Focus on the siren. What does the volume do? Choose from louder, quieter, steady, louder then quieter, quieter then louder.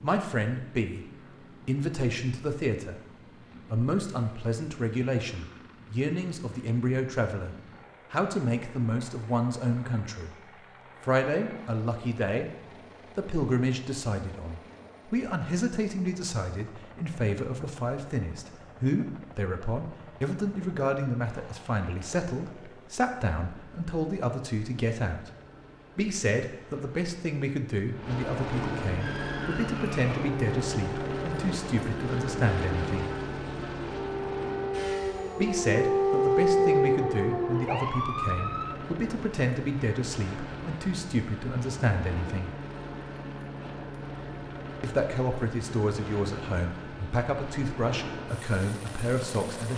louder.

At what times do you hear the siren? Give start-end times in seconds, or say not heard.
28.9-38.8.